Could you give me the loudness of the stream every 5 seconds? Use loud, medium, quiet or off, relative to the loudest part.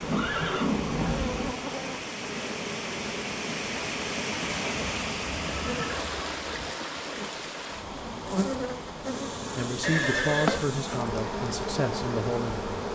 loud, loud, medium.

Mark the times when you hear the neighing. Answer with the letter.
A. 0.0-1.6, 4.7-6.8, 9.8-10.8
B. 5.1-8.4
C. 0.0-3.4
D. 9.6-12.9
A.